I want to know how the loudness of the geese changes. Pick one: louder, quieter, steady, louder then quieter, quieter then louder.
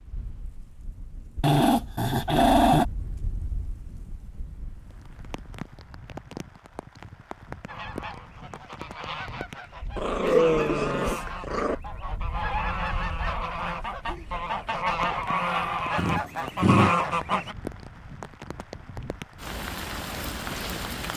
louder.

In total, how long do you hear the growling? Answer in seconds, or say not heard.
4 s.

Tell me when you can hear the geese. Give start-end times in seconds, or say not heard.
7.7-17.6.